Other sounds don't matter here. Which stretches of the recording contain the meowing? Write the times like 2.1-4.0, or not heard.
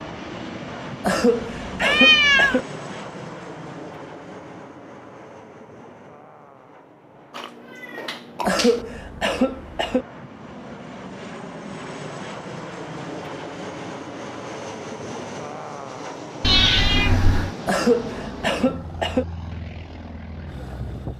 1.8-2.6, 7.3-8.8, 16.4-17.5.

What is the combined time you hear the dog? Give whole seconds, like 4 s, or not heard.
not heard.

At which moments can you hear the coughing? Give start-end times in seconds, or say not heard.
1.0-2.6, 8.4-10.1, 17.6-19.2.